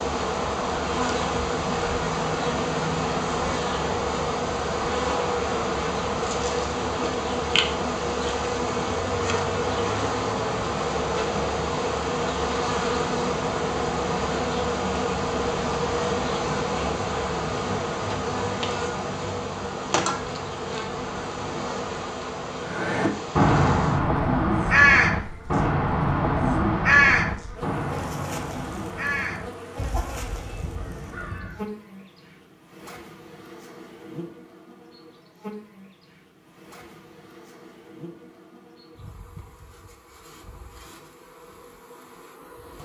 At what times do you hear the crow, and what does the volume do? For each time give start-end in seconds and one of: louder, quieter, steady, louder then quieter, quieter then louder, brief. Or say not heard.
22.6-31.6 quieter.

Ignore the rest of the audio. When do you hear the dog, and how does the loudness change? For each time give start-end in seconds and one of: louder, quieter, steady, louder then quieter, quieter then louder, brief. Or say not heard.
not heard.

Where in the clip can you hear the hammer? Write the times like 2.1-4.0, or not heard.
not heard.